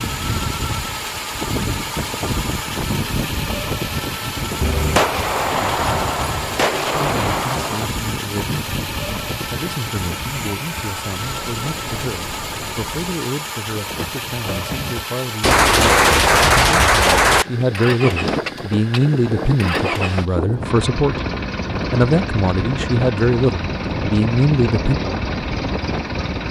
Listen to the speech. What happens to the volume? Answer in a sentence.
The loudness of the speech goes up.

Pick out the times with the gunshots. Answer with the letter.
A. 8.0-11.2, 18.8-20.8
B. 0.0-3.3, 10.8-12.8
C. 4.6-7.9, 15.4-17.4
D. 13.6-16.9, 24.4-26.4
C.